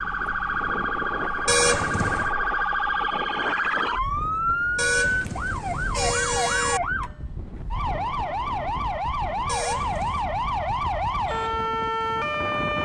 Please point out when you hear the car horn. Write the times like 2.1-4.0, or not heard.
1.4-2.3, 4.8-6.8, 9.4-10.2.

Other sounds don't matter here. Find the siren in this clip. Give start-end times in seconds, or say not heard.
0.0-12.8.